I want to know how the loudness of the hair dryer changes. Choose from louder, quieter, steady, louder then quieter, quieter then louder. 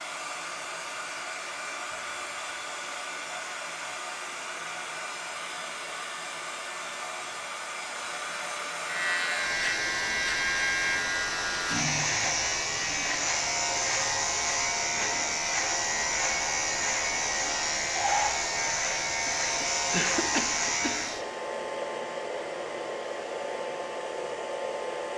steady.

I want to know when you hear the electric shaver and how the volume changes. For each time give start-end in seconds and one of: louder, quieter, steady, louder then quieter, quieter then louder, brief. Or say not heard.
8.8-21.1 steady.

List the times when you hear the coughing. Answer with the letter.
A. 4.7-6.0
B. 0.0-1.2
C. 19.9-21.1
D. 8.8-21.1
C.